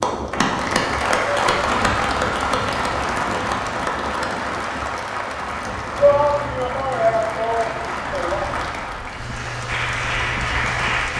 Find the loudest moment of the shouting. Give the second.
6 s.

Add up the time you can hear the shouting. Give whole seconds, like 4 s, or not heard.
3 s.